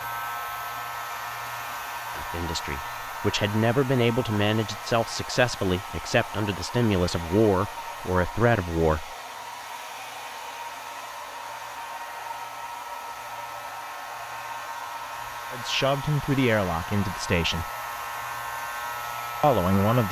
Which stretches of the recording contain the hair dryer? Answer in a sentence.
The hair dryer can be heard from 0.0 to 20.0 s.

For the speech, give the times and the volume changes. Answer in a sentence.
The speech can be heard from 2.1 to 9.1 s, at a steady volume; briefly from 15.5 to 17.7 s; and briefly from 19.4 to 20.0 s.